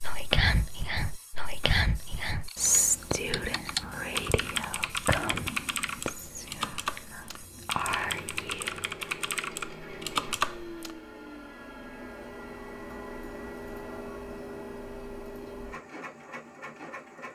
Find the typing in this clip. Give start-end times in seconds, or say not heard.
2.5-10.9.